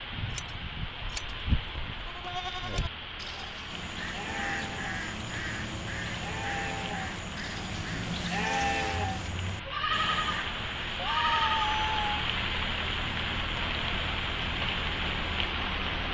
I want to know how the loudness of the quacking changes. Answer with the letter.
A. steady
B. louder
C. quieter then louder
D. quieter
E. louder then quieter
D.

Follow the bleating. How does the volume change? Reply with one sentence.
The loudness of the bleating goes up.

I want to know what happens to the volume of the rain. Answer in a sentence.
The volume of the rain goes up.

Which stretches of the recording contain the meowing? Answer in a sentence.
You can hear the meowing from 11.0 to 12.2 s.